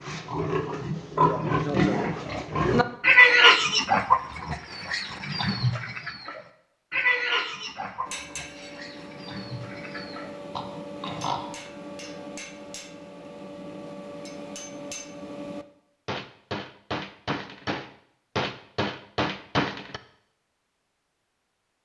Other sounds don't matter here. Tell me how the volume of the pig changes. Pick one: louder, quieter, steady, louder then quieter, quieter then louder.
louder then quieter.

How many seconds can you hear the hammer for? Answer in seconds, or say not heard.
12 s.